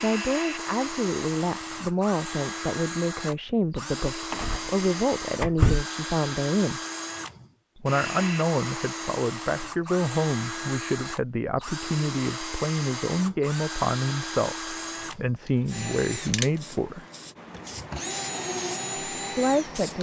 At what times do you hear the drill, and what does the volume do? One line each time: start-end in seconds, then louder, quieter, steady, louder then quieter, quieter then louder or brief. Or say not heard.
0.0-19.9 steady.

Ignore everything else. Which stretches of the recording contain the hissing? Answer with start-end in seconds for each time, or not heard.
15.4-19.9.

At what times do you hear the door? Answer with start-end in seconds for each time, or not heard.
4.3-5.8.